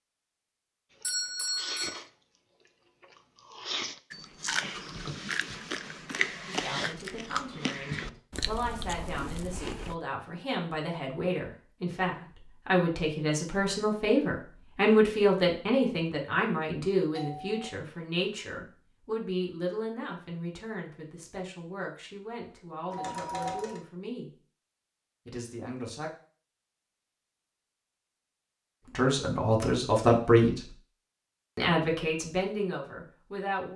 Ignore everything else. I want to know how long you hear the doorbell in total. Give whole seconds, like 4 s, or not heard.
2 s.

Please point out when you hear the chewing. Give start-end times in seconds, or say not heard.
1.0-9.9.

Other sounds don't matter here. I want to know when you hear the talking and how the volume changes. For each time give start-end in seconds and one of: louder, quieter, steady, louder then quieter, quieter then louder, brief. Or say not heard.
6.5-24.3 louder then quieter
25.2-26.1 brief
28.9-30.7 brief
31.6-33.7 brief.